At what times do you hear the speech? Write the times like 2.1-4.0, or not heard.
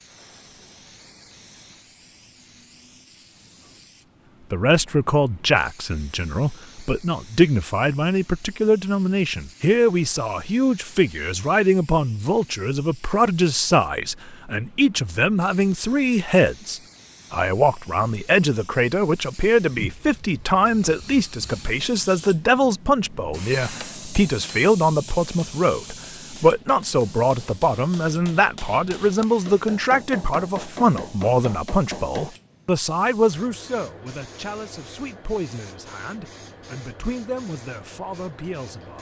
4.5-38.9.